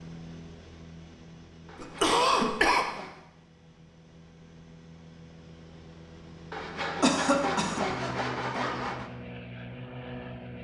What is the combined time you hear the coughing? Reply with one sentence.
The coughing can be heard for 2 seconds in total.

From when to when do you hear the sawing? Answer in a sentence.
You can hear the sawing from 1.6 to 3.2 s and from 6.5 to 9.1 s.